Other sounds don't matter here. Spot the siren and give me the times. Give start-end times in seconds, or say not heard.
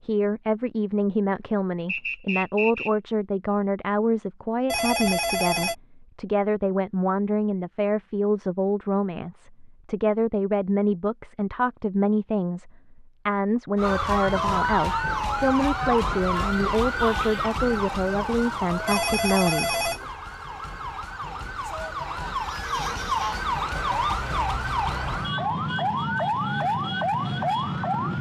13.8-28.1.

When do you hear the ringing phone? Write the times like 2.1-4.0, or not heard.
4.7-5.8, 18.9-20.1.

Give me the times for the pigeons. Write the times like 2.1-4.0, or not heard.
not heard.